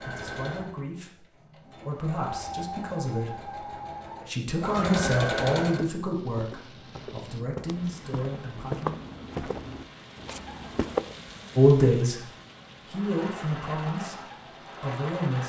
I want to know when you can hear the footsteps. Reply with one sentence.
The footsteps can be heard from 5.8 to 11.2 s.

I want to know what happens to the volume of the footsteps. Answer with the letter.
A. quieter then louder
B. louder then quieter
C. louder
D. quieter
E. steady
B.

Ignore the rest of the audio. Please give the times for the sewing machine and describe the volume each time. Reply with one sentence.
The sewing machine can be heard from 0.0 to 5.9 s, getting louder; and briefly from 12.8 to 15.4 s.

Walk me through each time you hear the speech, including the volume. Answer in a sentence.
The speech can be heard from 0.0 to 8.9 s, getting louder then quieter; briefly from 11.6 to 12.2 s; and briefly from 12.8 to 15.4 s.